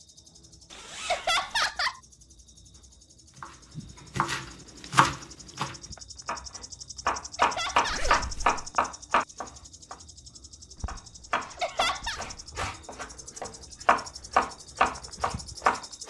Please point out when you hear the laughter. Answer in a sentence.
You can hear the laughter from 1.1 to 2.0 s, from 7.3 to 8.2 s and from 11.6 to 12.2 s.